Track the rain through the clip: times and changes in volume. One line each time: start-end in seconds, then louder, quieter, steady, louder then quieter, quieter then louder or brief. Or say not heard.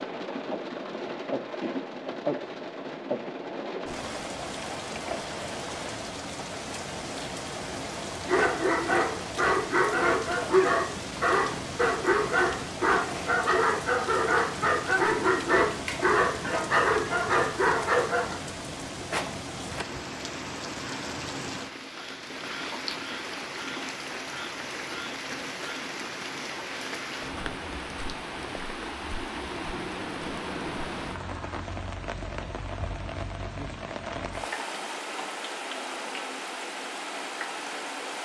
0.0-38.1 steady.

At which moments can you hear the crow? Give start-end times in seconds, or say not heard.
not heard.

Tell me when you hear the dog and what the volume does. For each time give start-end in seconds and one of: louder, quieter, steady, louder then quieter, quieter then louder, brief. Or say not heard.
8.2-18.4 steady.